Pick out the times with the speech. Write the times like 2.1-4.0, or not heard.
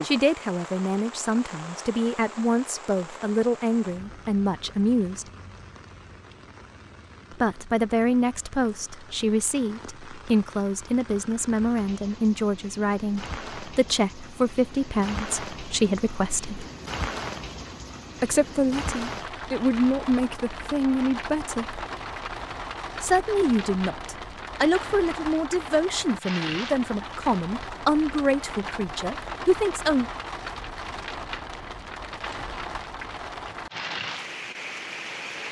0.0-5.2, 7.3-16.6, 18.2-21.8, 23.0-30.1.